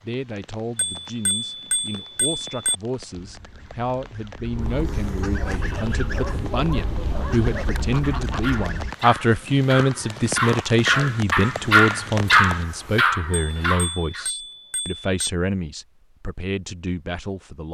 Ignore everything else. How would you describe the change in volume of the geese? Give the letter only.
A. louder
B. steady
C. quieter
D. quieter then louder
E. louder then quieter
A.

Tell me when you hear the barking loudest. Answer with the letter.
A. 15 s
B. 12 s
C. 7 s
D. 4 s
B.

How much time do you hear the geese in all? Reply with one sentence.
You can hear the geese for 6 seconds altogether.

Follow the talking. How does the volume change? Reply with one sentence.
The volume of the talking goes up, then down.